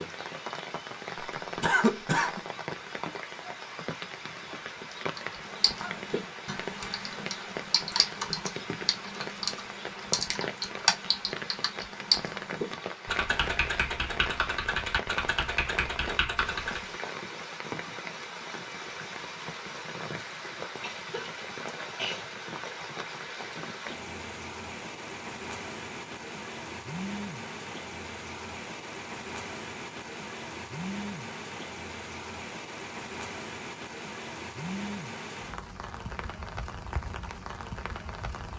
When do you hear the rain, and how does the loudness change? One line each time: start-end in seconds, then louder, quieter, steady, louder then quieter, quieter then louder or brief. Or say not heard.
0.0-38.5 steady.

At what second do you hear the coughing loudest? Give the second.
2 s.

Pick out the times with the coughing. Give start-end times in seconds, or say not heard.
1.6-2.4, 20.8-22.2.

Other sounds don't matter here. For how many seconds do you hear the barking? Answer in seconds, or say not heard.
not heard.